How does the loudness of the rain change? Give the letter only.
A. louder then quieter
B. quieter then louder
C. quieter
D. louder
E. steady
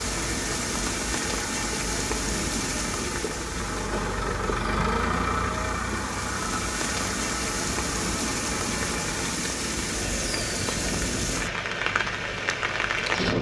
B.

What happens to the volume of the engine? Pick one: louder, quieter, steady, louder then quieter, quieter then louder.
louder then quieter.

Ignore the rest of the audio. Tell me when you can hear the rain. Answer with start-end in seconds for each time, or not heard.
0.0-13.3.